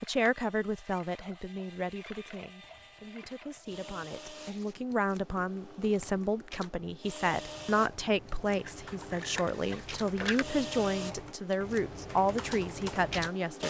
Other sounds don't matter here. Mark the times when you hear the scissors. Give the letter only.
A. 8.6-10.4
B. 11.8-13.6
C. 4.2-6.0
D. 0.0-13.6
A.